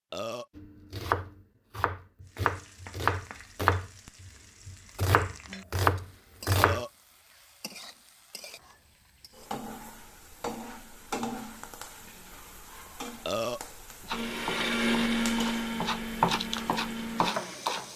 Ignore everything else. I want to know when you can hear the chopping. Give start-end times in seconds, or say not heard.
0.6-6.8, 14.1-17.9.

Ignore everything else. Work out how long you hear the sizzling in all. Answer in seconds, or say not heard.
16 s.